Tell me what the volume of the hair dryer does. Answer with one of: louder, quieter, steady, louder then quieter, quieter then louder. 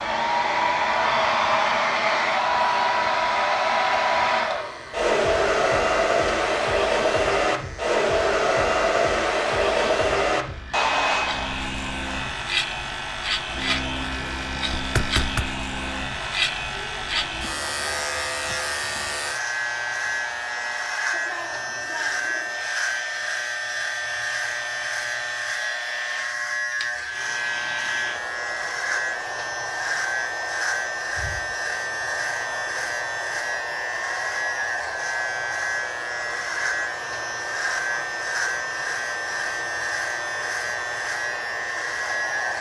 quieter.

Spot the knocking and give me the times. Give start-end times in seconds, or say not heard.
14.8-15.5.